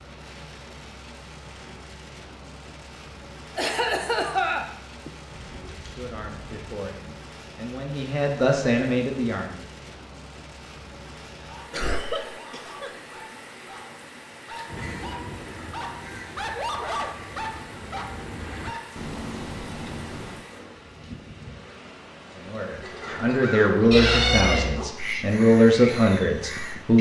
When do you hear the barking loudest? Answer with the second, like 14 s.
17 s.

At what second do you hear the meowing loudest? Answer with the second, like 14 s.
24 s.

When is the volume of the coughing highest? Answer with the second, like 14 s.
4 s.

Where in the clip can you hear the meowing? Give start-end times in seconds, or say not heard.
5.3-6.9, 23.9-24.9.